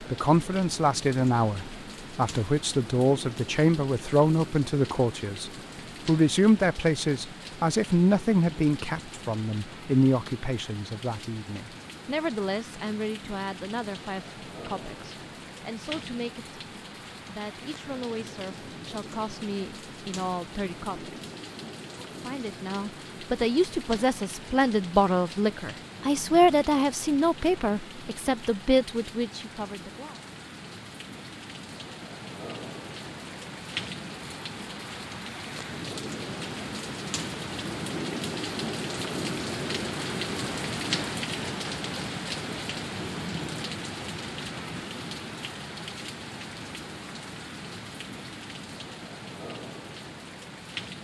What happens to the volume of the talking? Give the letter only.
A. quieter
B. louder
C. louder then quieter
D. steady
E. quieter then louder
E.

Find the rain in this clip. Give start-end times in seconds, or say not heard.
0.0-50.9.